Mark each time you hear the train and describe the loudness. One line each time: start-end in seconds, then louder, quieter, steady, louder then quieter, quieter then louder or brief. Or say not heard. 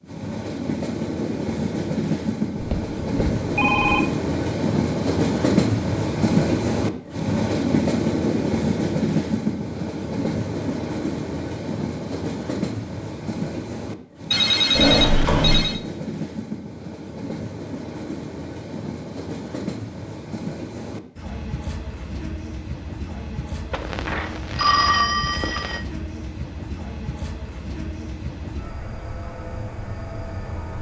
0.0-30.7 quieter.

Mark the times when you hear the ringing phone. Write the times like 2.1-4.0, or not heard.
2.5-4.0, 14.3-15.8, 23.7-25.8.